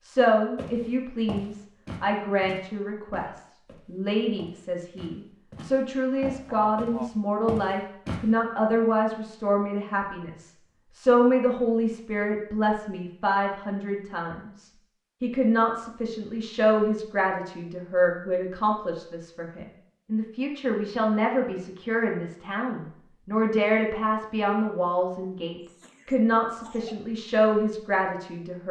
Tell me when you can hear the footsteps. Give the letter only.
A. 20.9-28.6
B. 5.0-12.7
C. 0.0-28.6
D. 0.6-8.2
D.